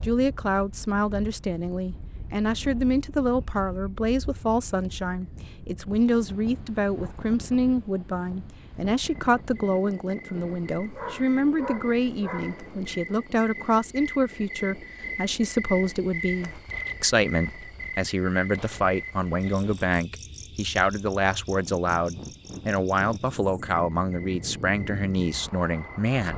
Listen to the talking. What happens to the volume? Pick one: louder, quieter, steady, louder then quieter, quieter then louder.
steady.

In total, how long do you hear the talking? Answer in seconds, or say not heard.
26 s.